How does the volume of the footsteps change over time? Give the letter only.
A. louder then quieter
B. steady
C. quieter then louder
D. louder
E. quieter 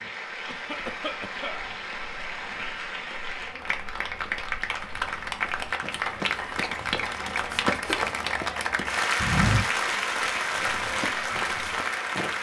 A.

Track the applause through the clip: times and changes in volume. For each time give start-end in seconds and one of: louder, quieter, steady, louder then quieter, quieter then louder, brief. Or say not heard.
0.0-12.3 louder.